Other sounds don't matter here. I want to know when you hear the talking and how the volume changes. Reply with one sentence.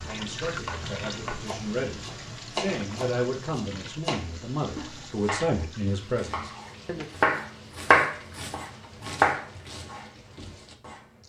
You can hear the talking from 0.0 to 7.0 s, getting louder.